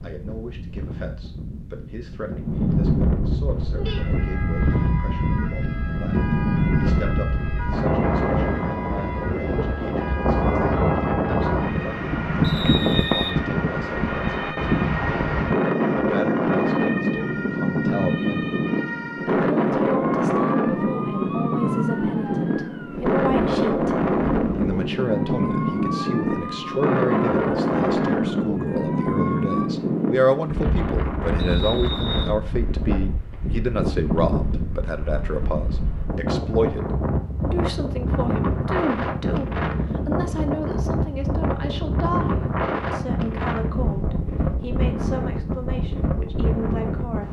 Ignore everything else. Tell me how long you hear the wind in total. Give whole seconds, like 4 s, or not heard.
47 s.